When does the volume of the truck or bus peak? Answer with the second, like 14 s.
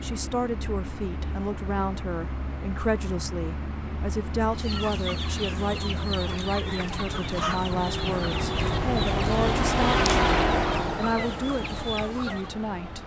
10 s.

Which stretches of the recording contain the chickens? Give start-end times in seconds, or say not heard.
4.5-12.5.